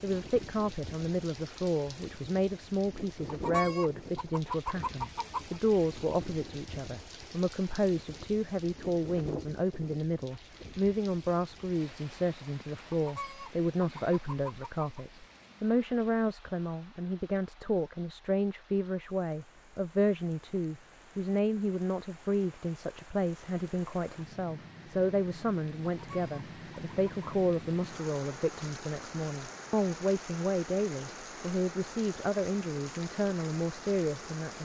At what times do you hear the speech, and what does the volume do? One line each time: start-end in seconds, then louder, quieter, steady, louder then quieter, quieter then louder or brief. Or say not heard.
0.0-34.6 steady.